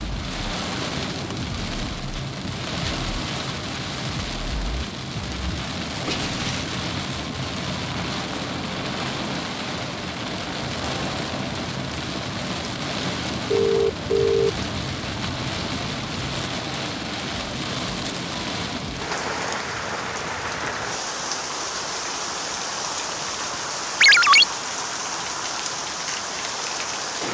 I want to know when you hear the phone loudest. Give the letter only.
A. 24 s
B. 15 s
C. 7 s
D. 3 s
A.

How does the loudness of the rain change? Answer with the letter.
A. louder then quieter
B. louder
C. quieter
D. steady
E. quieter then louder
D.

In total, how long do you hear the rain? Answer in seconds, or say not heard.
27 s.